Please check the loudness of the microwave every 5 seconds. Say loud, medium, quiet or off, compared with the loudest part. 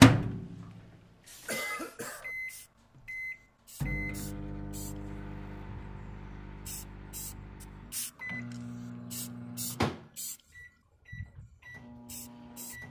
loud, quiet, quiet.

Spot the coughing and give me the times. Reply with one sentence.
You can hear the coughing from 1.4 to 2.3 s.